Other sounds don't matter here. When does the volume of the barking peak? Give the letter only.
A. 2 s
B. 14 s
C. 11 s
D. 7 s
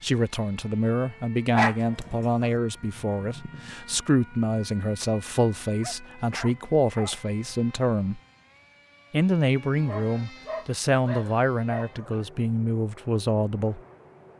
A.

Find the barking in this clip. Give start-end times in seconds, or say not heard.
1.5-2.5, 5.8-7.2, 9.8-12.2.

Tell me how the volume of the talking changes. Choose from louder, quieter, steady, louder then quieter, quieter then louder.
steady.